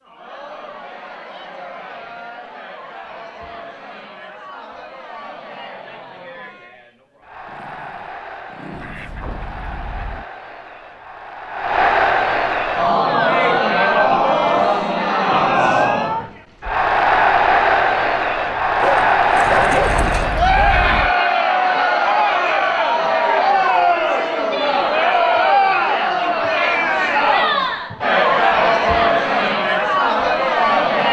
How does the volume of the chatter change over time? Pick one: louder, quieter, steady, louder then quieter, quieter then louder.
louder.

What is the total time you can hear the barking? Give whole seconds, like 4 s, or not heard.
3 s.